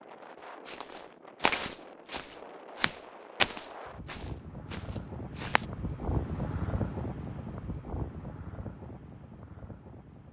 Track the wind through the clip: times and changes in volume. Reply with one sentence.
You can hear the wind from 0.0 to 10.2 s, getting louder then quieter.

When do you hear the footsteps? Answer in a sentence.
You can hear the footsteps from 0.7 to 5.7 s.